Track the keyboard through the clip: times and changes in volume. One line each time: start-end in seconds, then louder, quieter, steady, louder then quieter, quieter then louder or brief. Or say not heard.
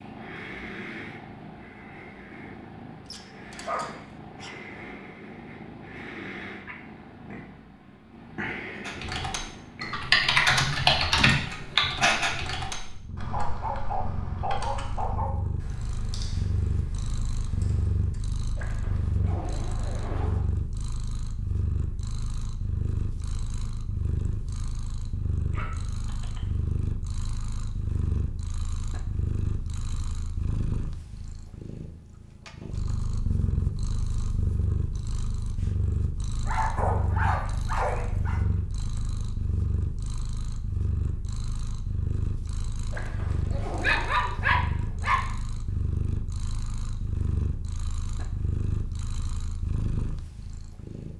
8.8-18.2 quieter.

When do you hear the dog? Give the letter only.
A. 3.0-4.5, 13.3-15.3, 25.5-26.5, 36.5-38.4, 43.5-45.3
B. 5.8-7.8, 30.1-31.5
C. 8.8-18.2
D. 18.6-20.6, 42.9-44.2
A.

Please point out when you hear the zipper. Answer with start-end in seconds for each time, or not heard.
18.6-20.6, 42.9-44.2.